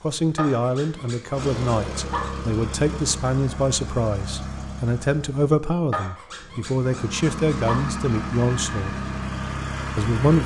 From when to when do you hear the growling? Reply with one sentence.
The growling can be heard from 0.3 to 2.4 s and from 5.9 to 7.8 s.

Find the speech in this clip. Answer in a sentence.
You can hear the speech from 0.0 to 8.9 s and from 9.9 to 10.4 s.